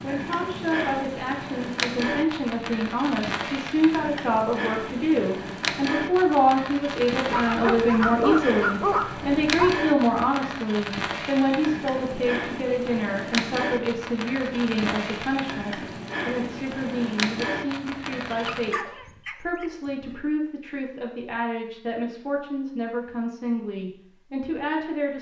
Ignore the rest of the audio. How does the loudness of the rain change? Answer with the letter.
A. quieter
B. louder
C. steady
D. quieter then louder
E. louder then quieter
C.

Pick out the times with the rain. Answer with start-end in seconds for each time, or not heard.
0.0-18.8.